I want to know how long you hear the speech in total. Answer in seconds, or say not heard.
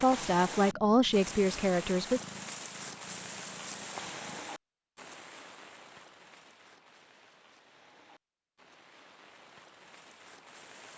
2 s.